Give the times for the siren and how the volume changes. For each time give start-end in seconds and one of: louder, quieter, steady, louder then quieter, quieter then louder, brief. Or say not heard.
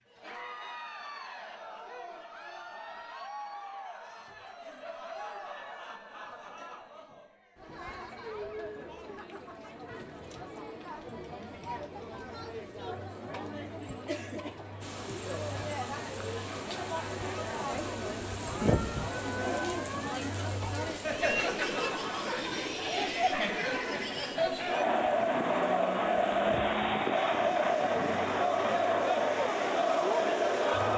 not heard.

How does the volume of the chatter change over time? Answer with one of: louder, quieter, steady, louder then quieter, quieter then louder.
louder.